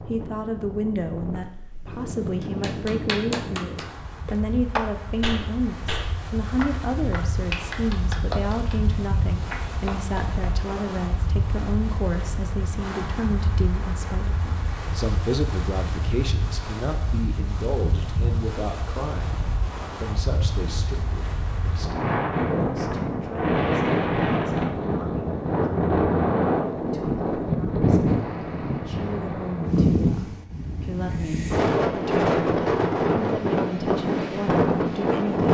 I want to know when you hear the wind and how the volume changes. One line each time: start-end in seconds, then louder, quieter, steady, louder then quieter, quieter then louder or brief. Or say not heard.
0.0-35.4 louder.